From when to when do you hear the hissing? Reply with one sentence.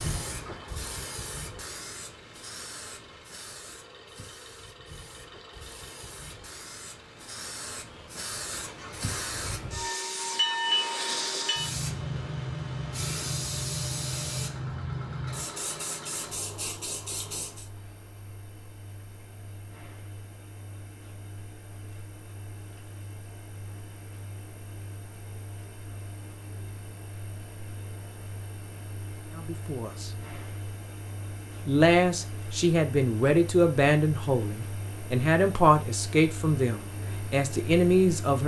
The hissing can be heard from 0.0 to 17.7 s.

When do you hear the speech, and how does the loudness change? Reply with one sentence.
The speech can be heard briefly from 29.4 to 30.1 s; and from 31.6 to 38.4 s, at a steady volume.